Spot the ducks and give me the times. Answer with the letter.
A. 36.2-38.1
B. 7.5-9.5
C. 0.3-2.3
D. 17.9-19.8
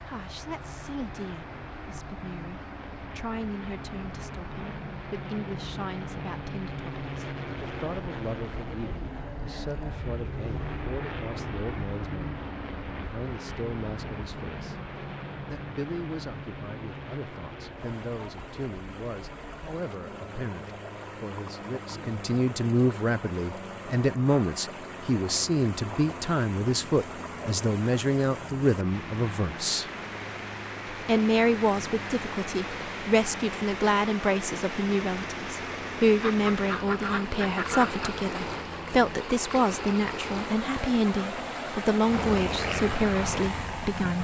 A.